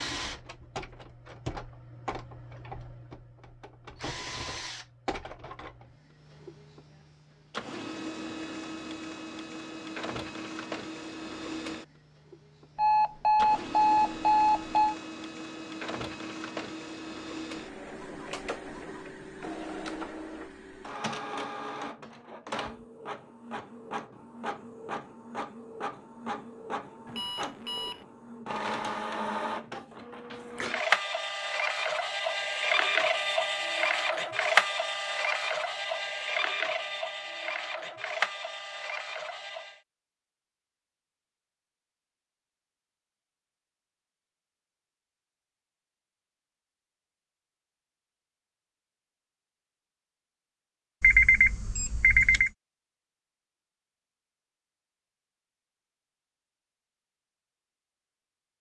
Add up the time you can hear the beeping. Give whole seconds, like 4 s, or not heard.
5 s.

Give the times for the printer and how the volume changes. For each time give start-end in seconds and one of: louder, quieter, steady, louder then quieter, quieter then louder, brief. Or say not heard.
0.0-39.8 louder.